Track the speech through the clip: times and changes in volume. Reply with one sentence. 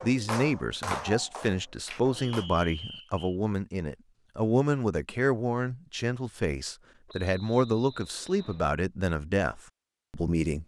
You can hear the speech from 0.0 to 10.6 s, at a steady volume.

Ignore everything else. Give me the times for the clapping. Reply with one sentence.
You can hear the clapping from 0.0 to 2.5 s.